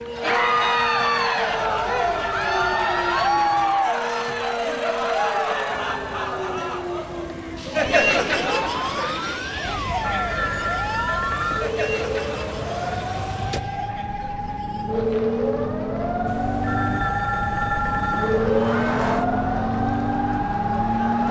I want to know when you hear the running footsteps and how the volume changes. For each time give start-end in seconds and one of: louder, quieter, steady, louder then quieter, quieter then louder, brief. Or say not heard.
not heard.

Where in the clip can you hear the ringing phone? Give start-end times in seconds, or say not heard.
1.6-3.5, 9.6-11.7, 16.2-18.5.